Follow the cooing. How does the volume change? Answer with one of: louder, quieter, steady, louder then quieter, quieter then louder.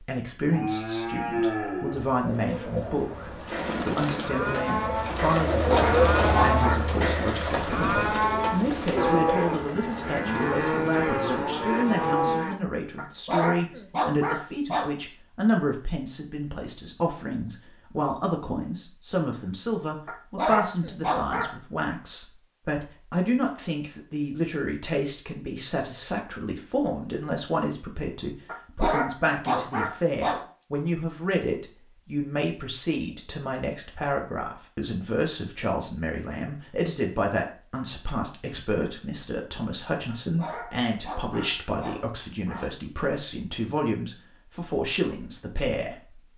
louder then quieter.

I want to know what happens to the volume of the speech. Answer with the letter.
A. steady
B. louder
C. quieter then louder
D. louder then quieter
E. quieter
A.